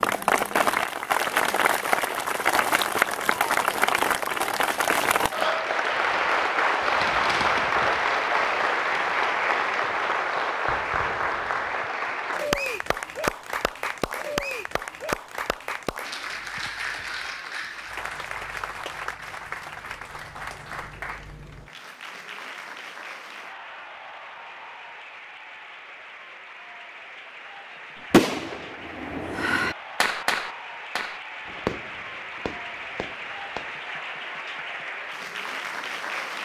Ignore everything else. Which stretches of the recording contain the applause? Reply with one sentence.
The applause can be heard from 0.0 to 36.4 s.